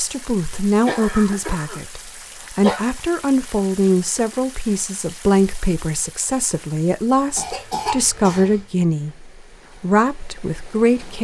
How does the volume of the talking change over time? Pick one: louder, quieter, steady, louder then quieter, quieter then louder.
steady.